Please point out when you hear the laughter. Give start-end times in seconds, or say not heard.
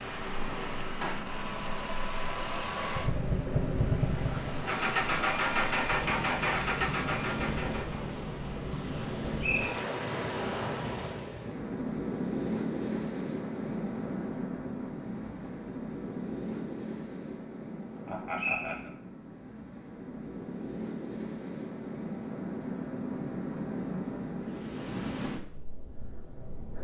18.1-18.9.